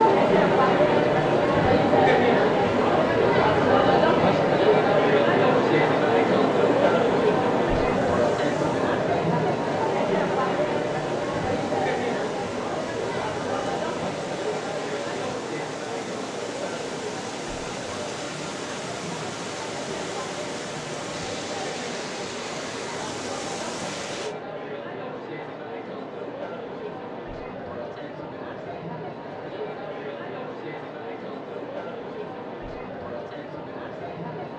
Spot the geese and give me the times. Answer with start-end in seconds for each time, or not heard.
not heard.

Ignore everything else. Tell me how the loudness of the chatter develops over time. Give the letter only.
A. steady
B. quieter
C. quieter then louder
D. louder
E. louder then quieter
B.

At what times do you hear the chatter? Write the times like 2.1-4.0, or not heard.
0.0-34.5.